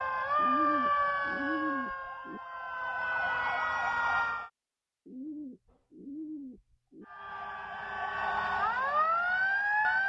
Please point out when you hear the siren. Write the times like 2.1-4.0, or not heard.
0.0-4.5, 7.0-10.0.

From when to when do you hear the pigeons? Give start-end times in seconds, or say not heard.
0.3-2.4, 5.0-7.0.